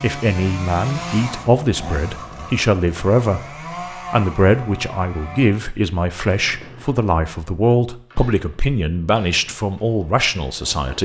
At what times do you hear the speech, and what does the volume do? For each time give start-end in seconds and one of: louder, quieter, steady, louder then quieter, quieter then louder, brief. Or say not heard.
0.0-11.0 steady.